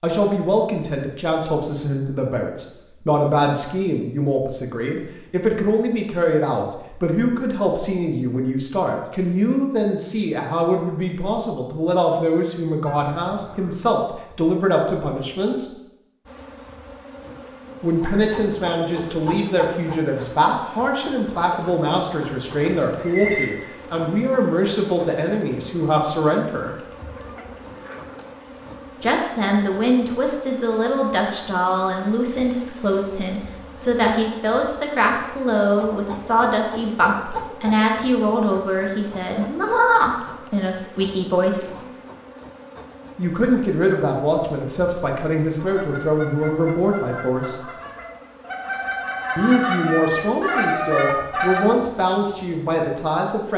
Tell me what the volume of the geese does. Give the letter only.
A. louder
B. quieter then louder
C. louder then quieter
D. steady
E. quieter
A.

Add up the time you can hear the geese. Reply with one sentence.
You can hear the geese for 6 seconds altogether.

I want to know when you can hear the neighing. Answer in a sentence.
You can hear the neighing from 22.4 to 23.6 s.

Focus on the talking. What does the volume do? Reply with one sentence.
The loudness of the talking stays about the same.